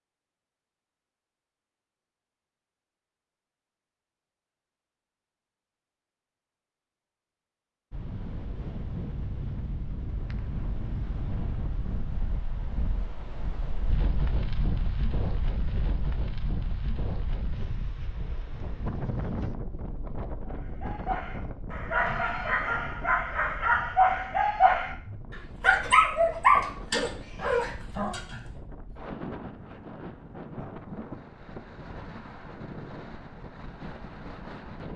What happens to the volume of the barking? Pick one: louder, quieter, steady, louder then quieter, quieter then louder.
louder then quieter.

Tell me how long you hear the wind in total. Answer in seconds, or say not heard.
27 s.